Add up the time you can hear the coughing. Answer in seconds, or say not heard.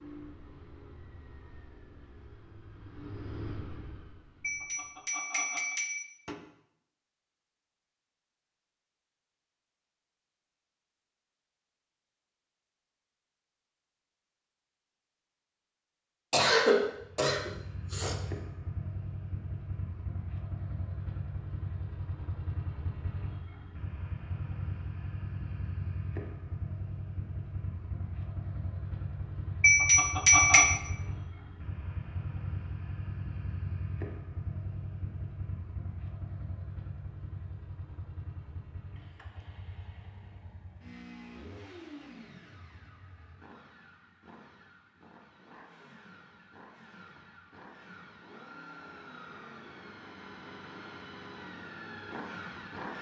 2 s.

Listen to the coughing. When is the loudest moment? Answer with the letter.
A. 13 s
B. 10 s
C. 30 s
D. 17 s
D.